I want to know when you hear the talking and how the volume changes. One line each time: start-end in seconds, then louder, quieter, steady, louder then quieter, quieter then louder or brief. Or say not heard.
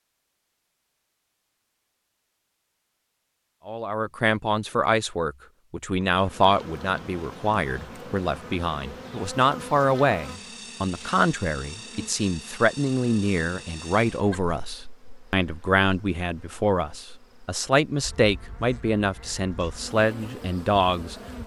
3.6-21.1 steady.